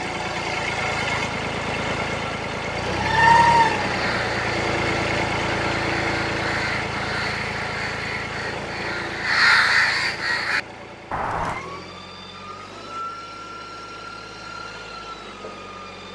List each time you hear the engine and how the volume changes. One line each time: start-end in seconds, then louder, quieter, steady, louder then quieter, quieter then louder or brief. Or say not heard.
0.0-16.1 quieter.